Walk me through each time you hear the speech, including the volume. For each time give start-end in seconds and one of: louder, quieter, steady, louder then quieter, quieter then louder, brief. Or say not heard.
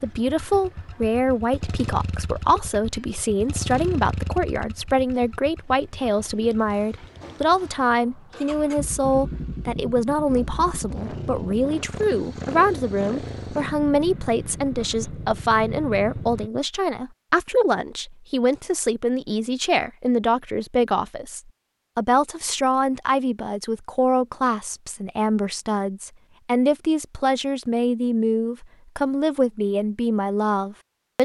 0.0-31.2 steady.